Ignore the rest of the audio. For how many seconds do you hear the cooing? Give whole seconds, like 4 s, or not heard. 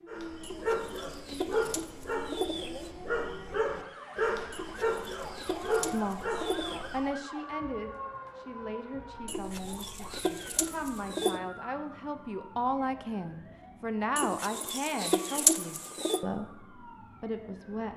9 s.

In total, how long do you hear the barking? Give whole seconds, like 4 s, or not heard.
7 s.